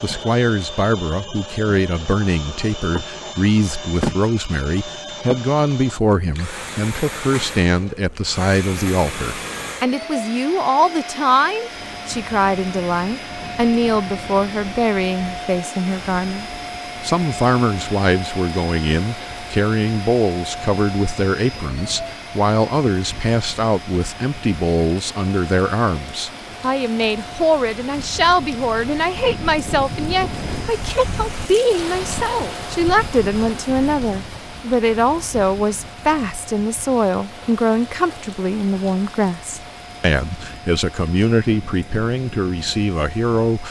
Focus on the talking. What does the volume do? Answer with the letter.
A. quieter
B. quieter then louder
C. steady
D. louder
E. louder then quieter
C.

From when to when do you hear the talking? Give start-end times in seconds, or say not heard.
0.0-43.6.